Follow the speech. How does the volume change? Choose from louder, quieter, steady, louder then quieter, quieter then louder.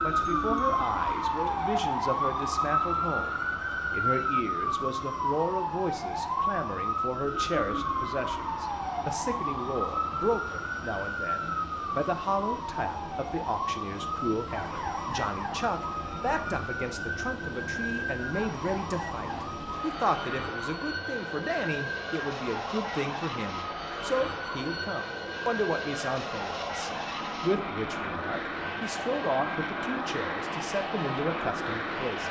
steady.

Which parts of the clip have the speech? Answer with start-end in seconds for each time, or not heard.
0.0-32.2.